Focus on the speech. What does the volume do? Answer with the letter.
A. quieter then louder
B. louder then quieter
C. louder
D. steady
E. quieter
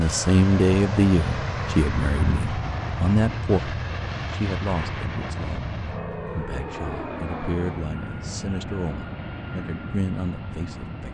E.